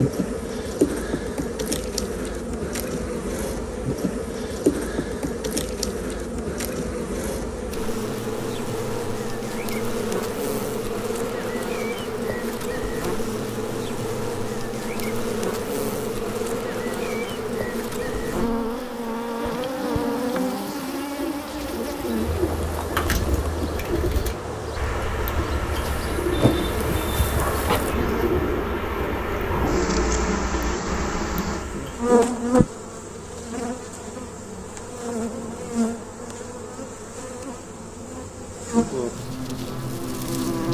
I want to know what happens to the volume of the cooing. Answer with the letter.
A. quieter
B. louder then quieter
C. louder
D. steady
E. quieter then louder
D.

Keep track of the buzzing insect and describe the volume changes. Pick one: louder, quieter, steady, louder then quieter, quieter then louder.
steady.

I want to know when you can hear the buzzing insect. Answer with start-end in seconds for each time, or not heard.
0.0-40.6.